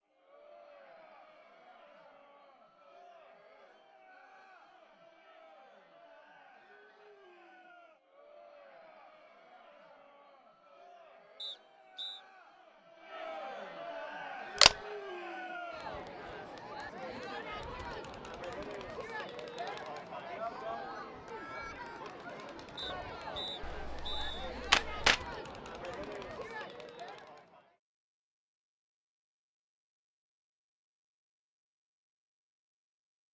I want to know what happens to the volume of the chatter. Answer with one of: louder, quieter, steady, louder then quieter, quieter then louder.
louder.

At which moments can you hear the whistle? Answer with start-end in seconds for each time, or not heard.
11.3-12.2, 22.8-24.5.